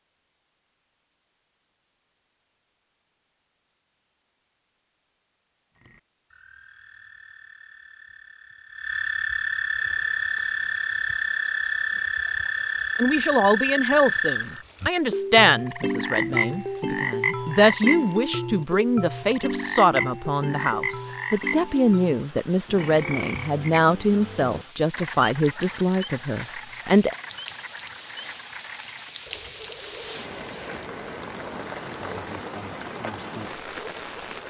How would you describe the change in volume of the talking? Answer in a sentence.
The loudness of the talking stays about the same.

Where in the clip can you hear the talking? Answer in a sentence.
You can hear the talking from 12.9 to 27.1 s.